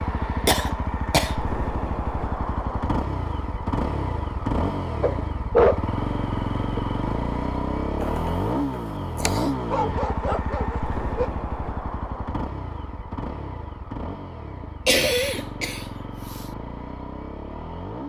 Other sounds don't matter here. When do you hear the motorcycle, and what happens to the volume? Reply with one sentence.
The motorcycle can be heard from 0.0 to 18.0 s, getting quieter.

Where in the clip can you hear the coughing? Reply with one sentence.
You can hear the coughing from 0.5 to 1.4 s, from 8.0 to 9.6 s and from 14.8 to 16.4 s.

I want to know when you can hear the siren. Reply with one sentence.
You can't hear the siren here.